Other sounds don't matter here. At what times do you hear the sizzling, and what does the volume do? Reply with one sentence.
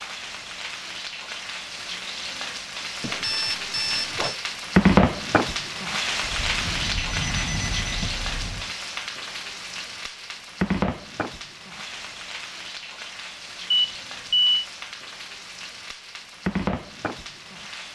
You can hear the sizzling from 0.0 to 17.8 s, getting louder then quieter.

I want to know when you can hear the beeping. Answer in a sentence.
The beeping can be heard from 3.0 to 4.4 s, from 6.2 to 8.7 s and from 13.7 to 14.7 s.